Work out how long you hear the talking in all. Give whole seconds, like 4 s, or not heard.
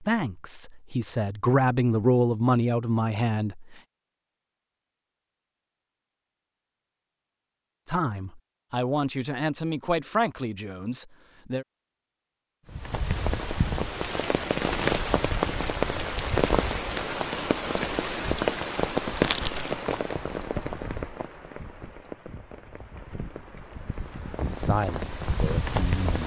9 s.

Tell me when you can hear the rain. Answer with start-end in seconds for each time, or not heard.
12.7-26.2.